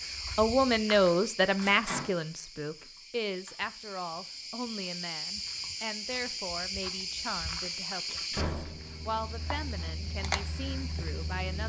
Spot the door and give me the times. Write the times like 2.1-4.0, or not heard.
1.6-2.1, 8.3-8.9.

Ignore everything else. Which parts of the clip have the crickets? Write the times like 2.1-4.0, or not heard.
0.0-11.6.